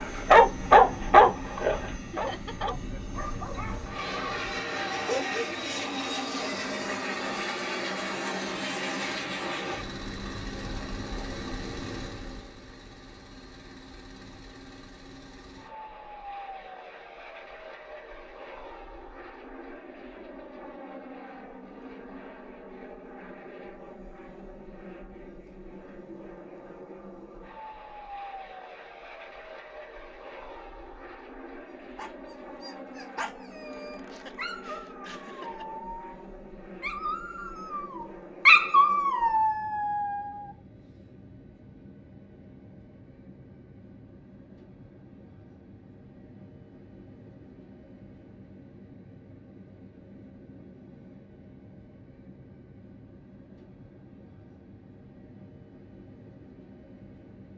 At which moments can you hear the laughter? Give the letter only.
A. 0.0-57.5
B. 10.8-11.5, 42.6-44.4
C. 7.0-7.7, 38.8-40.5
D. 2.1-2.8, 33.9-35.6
D.